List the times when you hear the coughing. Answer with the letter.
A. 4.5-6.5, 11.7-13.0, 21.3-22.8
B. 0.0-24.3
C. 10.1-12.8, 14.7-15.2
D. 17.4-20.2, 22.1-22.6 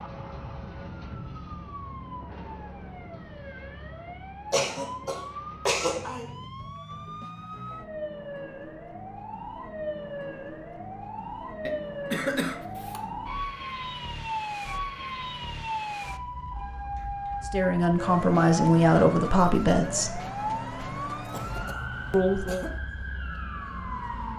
A.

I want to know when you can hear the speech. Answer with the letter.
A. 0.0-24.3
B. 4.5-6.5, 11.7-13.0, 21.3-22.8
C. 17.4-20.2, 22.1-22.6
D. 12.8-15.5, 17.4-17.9
C.